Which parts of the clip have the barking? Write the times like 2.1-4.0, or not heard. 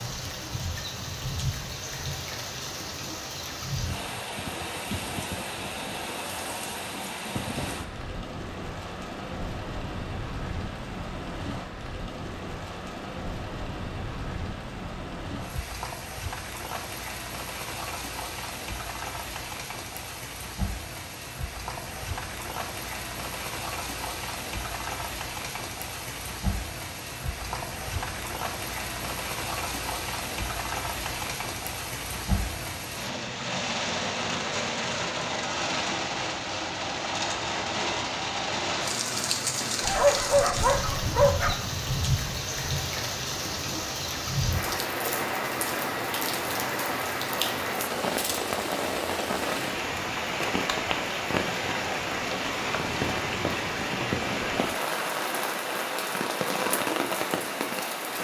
39.8-41.5.